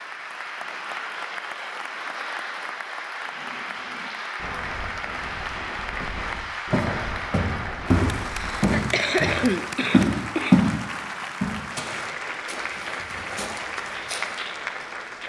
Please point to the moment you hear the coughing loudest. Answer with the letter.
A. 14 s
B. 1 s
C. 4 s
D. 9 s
D.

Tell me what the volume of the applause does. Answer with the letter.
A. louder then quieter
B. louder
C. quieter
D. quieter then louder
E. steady
E.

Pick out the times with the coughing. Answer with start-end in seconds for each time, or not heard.
8.5-10.6.